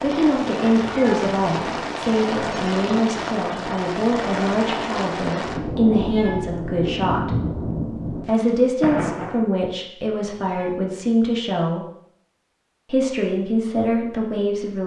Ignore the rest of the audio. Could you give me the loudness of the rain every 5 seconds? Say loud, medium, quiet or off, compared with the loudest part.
loud, loud, off.